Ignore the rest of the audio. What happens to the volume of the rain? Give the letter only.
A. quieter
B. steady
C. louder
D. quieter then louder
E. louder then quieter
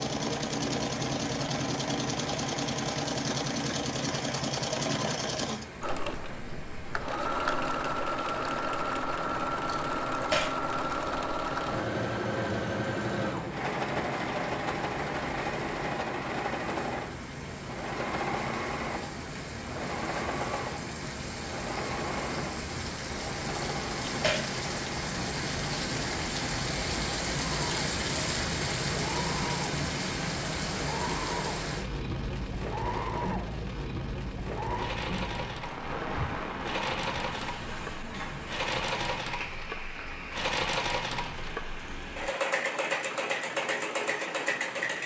E.